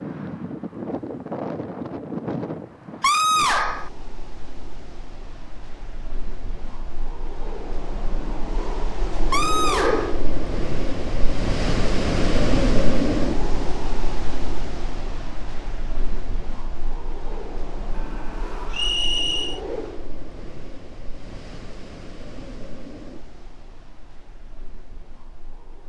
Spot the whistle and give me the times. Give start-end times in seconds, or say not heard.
18.7-19.6.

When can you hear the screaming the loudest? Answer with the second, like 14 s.
3 s.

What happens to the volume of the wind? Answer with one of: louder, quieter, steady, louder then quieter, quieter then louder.
louder then quieter.